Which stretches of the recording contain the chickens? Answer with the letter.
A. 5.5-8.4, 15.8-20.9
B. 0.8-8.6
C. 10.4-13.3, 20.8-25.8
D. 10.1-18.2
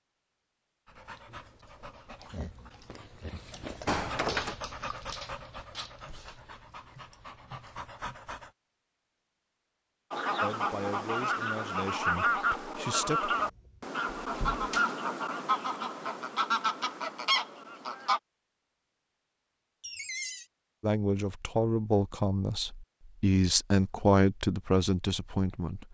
D.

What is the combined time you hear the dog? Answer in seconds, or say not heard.
8 s.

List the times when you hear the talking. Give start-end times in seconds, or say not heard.
10.4-13.3, 20.8-25.8.